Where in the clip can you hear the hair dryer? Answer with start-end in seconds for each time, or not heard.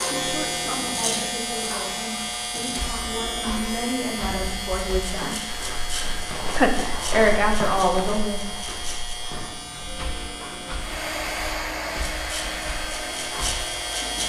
10.8-14.2.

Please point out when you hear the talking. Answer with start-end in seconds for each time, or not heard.
0.1-5.4, 6.5-8.5.